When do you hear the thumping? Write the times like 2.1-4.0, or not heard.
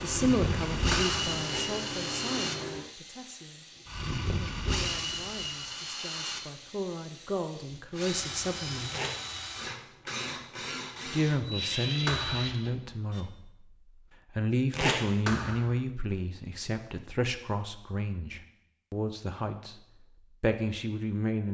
0.9-1.3, 12.1-12.7, 15.2-15.8.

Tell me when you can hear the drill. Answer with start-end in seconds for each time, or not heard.
0.0-13.2.